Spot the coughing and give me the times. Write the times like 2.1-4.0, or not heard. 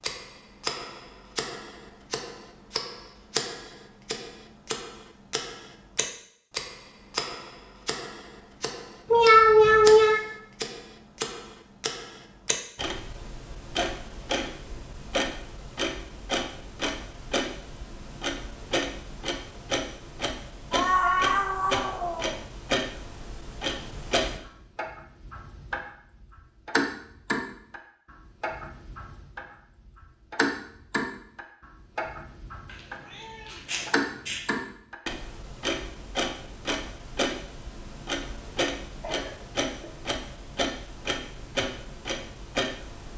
39.0-39.9.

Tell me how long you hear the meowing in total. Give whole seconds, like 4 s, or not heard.
4 s.